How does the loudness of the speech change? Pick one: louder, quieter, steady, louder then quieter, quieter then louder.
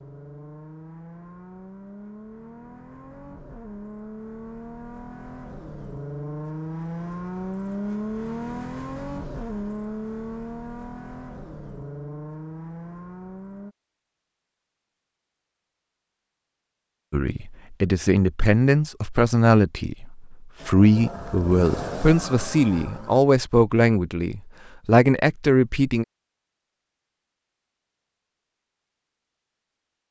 steady.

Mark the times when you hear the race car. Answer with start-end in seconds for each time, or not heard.
0.0-13.8, 20.6-23.2.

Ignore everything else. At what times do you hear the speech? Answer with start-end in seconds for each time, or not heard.
17.1-26.1.